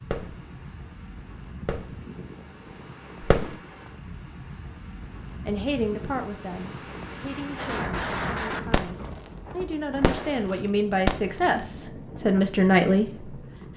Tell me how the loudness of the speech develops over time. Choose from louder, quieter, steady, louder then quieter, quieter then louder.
quieter then louder.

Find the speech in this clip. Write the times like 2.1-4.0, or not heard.
5.4-13.7.